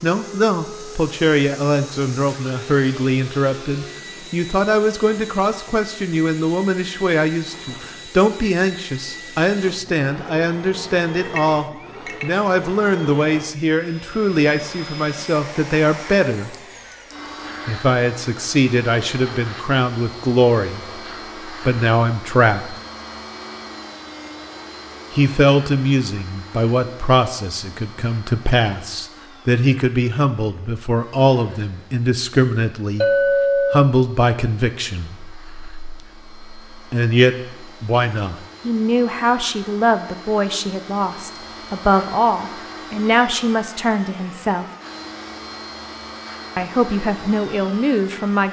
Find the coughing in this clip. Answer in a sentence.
The coughing can't be heard in this clip.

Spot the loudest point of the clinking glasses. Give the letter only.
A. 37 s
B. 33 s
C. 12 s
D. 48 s
B.